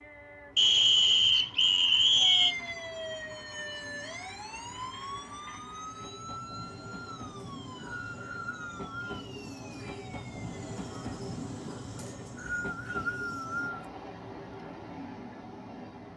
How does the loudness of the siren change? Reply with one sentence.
The loudness of the siren goes down.